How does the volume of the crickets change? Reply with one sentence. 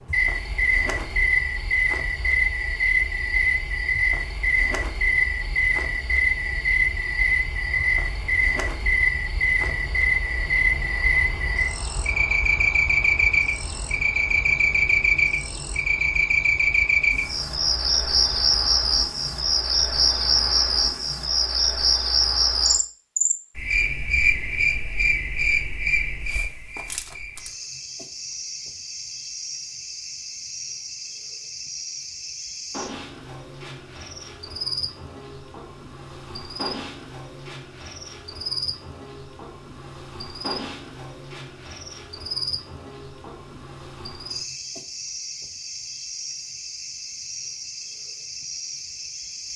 The loudness of the crickets goes down.